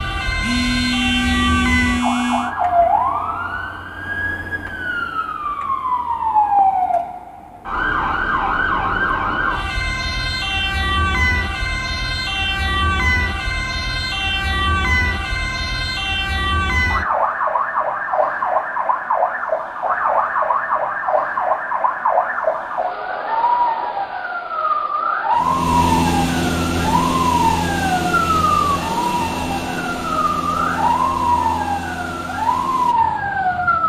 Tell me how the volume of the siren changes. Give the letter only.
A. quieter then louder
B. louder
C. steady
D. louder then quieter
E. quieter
C.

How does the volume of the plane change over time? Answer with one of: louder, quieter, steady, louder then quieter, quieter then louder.
quieter.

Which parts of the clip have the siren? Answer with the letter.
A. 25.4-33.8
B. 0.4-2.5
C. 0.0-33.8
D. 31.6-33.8
C.